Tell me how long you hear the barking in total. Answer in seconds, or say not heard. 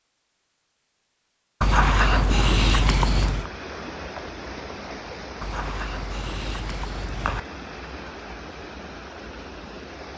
4 s.